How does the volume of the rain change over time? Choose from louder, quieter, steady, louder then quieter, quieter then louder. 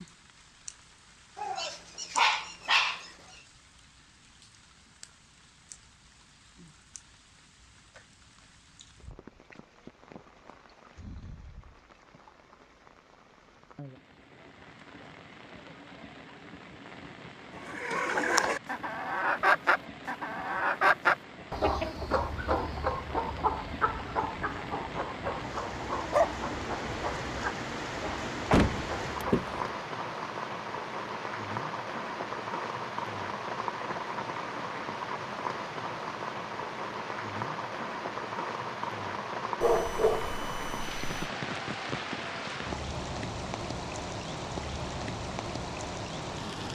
louder.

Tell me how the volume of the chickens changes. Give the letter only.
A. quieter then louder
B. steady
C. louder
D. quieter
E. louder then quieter
D.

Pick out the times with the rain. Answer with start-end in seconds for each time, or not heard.
0.0-46.7.